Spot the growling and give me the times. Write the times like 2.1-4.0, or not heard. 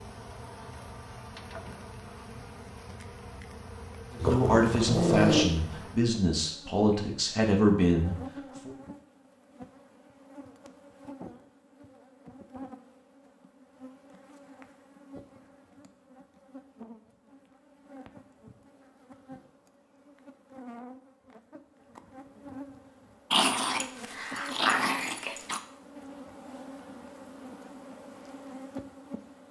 4.2-5.5, 23.3-25.6.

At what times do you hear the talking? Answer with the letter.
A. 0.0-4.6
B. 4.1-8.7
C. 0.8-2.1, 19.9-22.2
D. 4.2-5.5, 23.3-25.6
B.